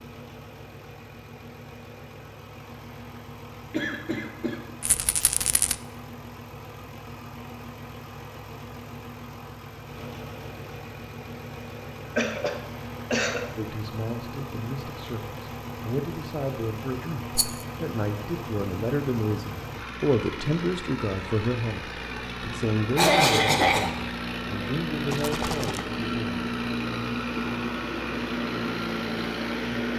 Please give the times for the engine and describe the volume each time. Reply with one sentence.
The engine can be heard from 0.0 to 29.9 s, getting louder.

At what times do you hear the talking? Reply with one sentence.
The talking can be heard from 13.6 to 26.4 s.